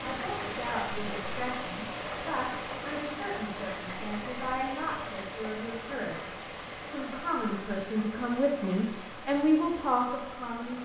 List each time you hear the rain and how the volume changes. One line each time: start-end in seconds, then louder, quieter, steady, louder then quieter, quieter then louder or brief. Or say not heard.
0.0-10.8 quieter.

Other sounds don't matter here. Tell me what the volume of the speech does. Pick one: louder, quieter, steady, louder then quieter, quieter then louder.
louder.